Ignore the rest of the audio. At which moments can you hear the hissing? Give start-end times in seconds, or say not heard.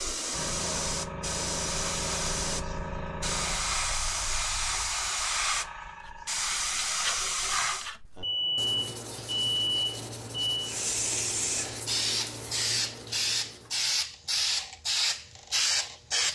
0.0-7.9, 10.6-16.2.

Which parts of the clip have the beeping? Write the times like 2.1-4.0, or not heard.
8.2-10.7.